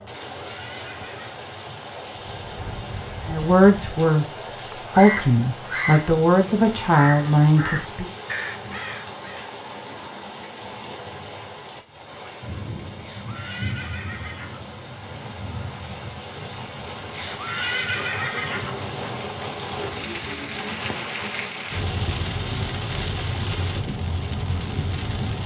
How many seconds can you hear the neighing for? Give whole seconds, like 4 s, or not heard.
4 s.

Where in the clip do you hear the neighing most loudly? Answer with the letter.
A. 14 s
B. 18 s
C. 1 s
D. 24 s
B.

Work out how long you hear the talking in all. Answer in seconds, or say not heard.
5 s.